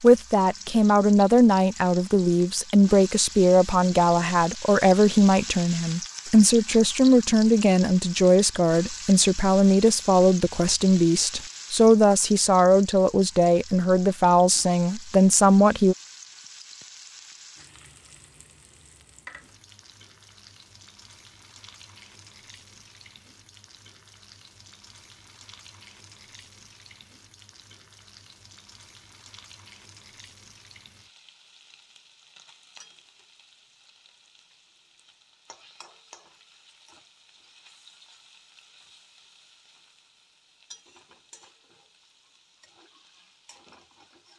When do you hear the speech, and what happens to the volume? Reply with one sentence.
The speech can be heard from 0.0 to 15.9 s, at a steady volume.